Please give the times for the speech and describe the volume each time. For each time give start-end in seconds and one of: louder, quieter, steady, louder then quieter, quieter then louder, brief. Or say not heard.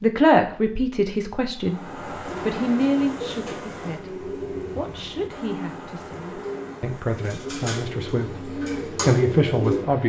0.0-10.0 quieter then louder.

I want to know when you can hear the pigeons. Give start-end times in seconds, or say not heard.
2.2-9.8.